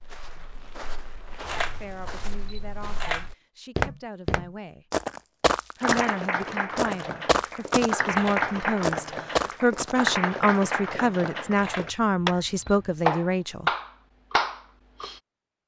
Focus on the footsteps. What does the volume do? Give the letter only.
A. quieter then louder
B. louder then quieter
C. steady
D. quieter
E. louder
E.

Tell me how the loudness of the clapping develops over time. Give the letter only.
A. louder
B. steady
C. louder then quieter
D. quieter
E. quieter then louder
A.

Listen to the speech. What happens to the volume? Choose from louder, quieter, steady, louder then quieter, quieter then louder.
louder.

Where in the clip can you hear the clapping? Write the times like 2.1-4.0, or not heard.
5.8-15.2.